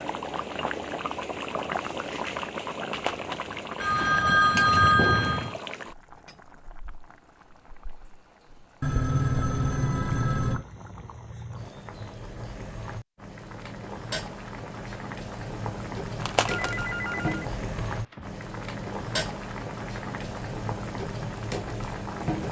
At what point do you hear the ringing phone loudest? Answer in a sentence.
The loudest moment of the ringing phone is at 5 seconds.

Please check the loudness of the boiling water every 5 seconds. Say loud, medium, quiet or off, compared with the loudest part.
loud, medium, medium, loud, loud.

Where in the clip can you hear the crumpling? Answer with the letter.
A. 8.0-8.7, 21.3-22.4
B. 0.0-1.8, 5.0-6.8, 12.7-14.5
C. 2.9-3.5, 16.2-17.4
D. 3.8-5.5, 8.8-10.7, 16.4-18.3
C.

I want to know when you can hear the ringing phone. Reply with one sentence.
You can hear the ringing phone from 3.8 to 5.5 s, from 8.8 to 10.7 s and from 16.4 to 18.3 s.